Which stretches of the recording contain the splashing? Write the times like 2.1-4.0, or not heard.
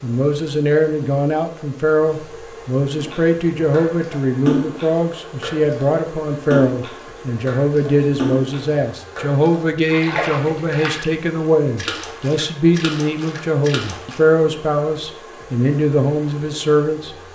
3.0-11.1, 11.8-14.2.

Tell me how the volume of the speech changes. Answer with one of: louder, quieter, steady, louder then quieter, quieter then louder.
steady.